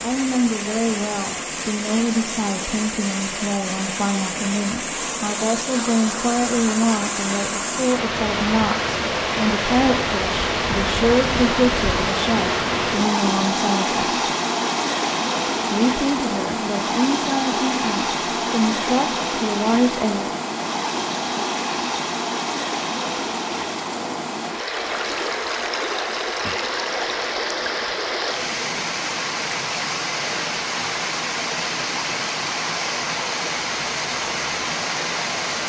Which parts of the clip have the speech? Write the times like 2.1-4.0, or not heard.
0.0-14.2, 15.7-20.3.